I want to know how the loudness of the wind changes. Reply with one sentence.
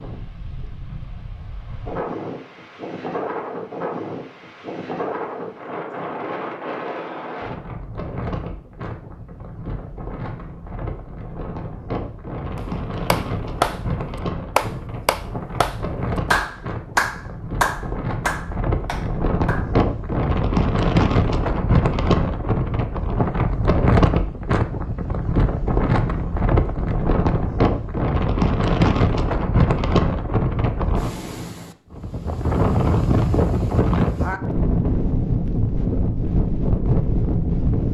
The volume of the wind goes up.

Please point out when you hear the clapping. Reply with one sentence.
You can hear the clapping from 12.6 to 13.8 s and from 14.6 to 19.7 s.